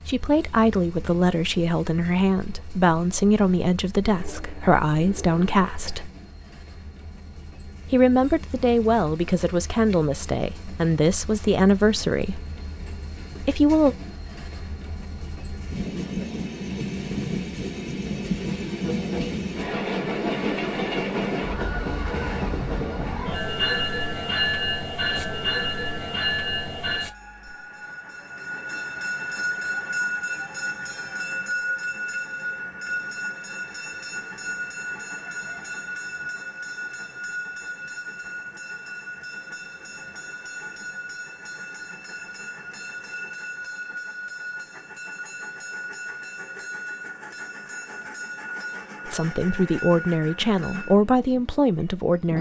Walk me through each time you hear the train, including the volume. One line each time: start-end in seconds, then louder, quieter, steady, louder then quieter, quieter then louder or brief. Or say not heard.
0.0-52.3 louder then quieter.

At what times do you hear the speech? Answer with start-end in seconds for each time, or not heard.
0.0-6.1, 7.8-12.4, 13.4-13.9, 49.0-52.3.